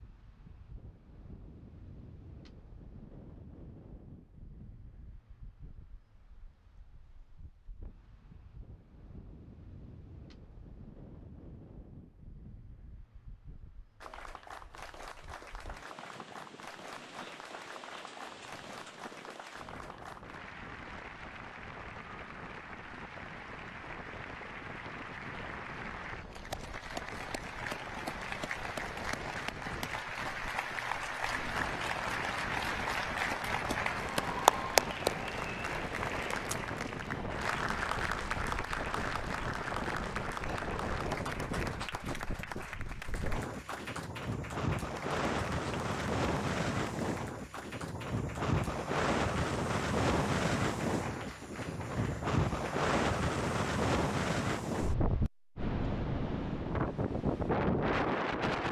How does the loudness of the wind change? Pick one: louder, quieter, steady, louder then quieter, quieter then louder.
louder.